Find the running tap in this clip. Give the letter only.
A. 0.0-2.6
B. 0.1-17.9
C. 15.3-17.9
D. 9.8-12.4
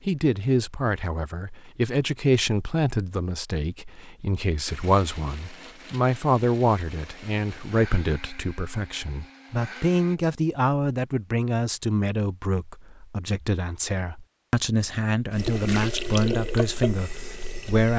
C.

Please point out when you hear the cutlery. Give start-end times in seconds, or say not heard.
not heard.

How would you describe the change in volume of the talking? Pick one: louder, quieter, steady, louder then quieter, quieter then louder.
steady.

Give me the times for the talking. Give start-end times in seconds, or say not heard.
0.1-17.9.